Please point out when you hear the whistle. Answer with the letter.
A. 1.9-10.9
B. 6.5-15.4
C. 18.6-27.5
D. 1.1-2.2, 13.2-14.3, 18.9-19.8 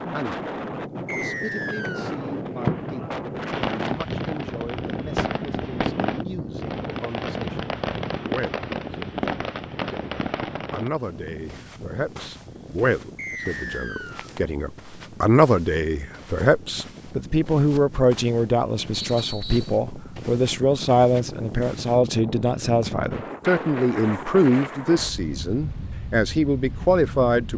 D.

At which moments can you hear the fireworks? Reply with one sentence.
The fireworks can be heard from 1.9 to 10.9 s.